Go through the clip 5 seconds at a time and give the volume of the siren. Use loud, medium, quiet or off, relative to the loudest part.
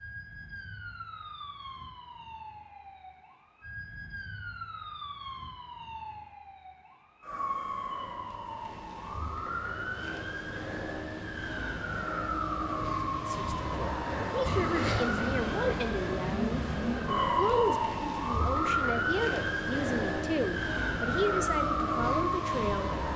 quiet, medium, loud, loud, loud.